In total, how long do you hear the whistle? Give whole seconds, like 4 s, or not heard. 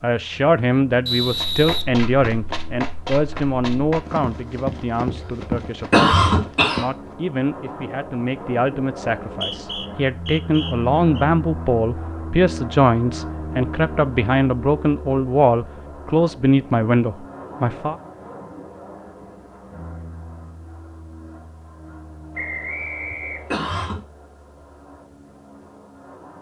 5 s.